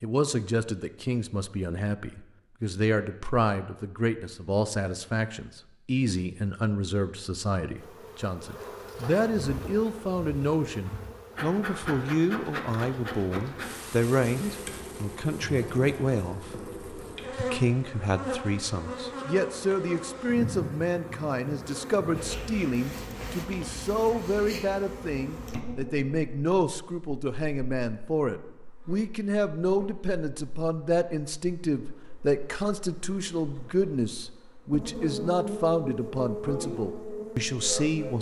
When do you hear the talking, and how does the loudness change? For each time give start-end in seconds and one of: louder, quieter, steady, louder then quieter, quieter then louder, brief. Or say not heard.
0.0-38.1 steady.